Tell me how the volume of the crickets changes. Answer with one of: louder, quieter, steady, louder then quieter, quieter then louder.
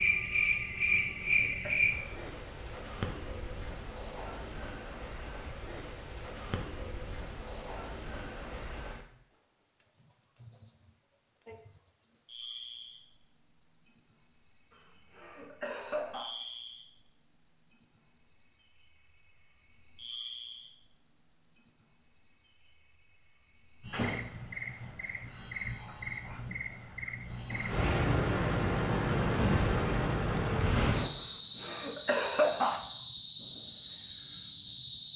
steady.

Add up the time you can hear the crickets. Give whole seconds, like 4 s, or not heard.
35 s.